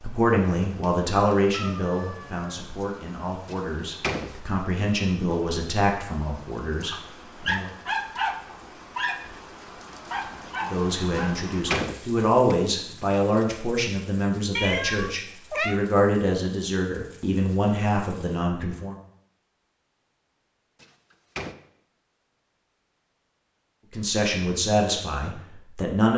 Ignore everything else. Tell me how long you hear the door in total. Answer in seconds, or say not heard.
4 s.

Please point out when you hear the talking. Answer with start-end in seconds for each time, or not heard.
0.0-7.7, 10.7-18.9, 23.9-26.1.